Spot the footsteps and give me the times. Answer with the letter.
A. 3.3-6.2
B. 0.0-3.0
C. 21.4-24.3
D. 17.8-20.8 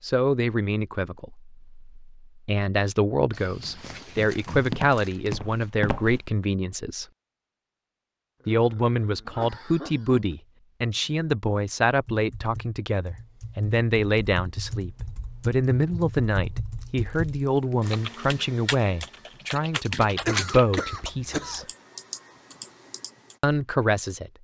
A.